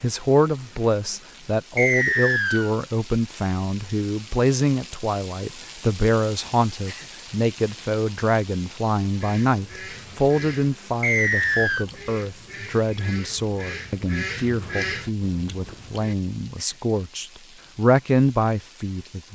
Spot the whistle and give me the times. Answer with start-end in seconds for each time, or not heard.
1.8-2.7, 11.0-11.8.